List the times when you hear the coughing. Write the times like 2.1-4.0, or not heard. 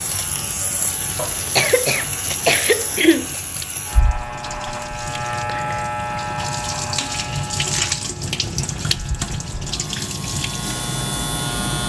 1.1-3.4.